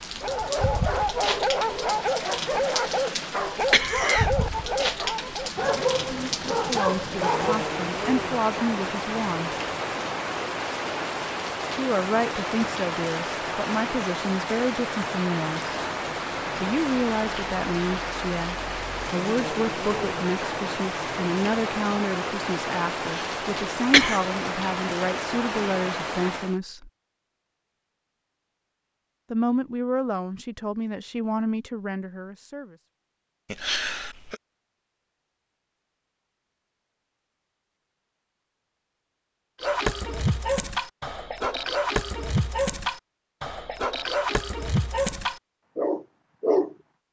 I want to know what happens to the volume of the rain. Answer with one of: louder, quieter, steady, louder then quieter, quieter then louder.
steady.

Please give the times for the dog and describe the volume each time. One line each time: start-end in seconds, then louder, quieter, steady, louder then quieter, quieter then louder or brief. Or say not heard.
0.2-7.6 steady
39.6-46.8 steady.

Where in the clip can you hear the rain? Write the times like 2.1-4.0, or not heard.
0.0-26.6.